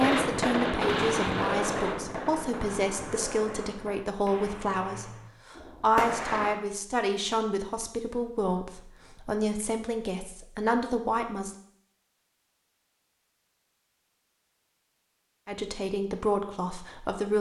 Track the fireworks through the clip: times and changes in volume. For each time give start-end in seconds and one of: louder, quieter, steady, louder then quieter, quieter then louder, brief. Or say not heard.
0.0-6.6 quieter then louder.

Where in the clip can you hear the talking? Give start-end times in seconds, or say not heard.
0.0-11.6, 15.4-17.3.